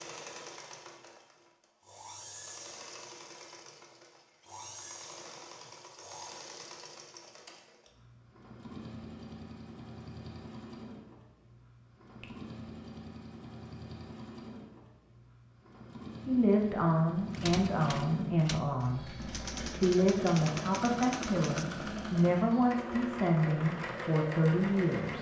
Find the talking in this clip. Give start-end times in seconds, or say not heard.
16.2-25.1.